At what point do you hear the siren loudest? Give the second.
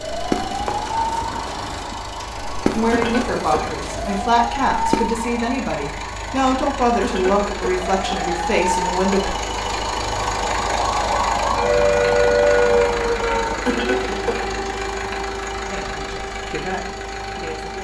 12 s.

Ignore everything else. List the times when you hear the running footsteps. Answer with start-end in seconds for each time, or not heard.
0.0-5.2.